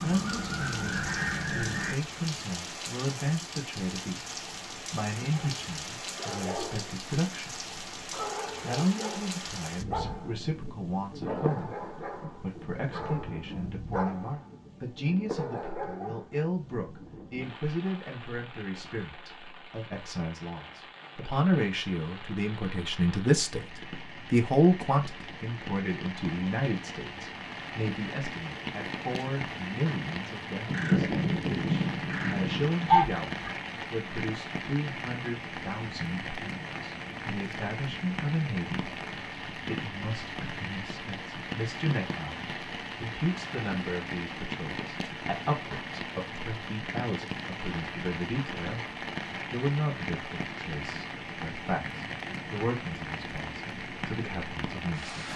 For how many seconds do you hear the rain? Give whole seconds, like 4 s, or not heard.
55 s.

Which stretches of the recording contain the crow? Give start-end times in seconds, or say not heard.
0.0-1.9, 30.6-33.2.